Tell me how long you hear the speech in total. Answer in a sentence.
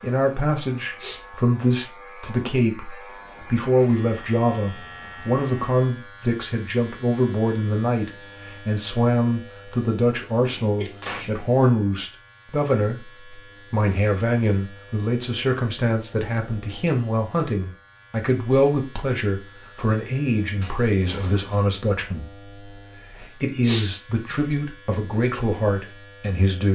The speech can be heard for 27 seconds in total.